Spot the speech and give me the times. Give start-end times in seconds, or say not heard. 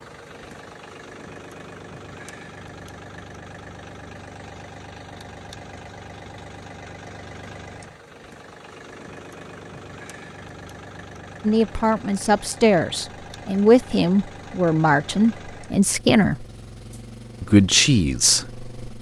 11.4-16.4, 17.4-18.9.